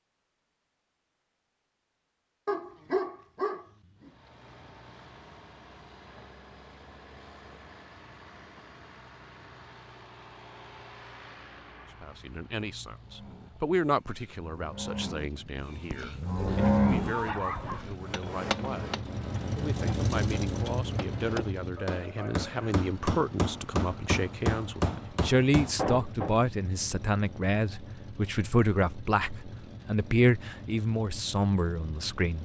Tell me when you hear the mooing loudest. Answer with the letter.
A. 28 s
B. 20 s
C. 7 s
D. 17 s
D.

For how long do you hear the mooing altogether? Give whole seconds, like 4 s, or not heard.
6 s.